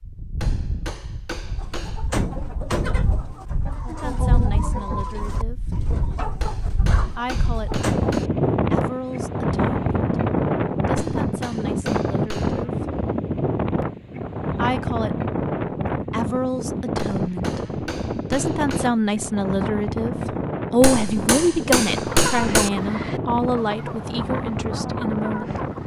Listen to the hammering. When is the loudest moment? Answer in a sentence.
The loudest moment of the hammering is at 22 seconds.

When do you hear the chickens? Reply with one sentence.
The chickens can be heard from 1.5 to 8.2 s and from 22.0 to 25.8 s.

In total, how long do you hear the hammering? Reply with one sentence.
You can hear the hammering for 9 seconds altogether.